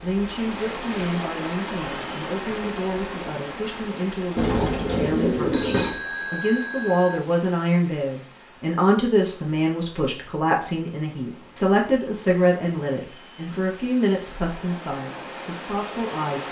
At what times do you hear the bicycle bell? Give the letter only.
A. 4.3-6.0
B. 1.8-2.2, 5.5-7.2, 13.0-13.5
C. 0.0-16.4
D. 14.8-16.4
B.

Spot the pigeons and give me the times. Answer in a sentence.
The pigeons can be heard from 4.3 to 6.0 s.